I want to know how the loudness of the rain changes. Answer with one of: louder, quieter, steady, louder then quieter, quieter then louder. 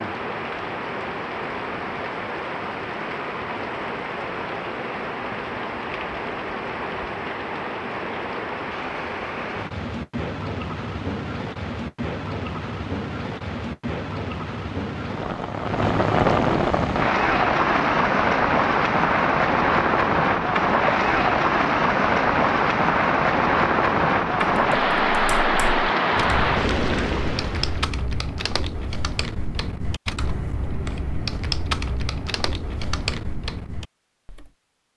louder.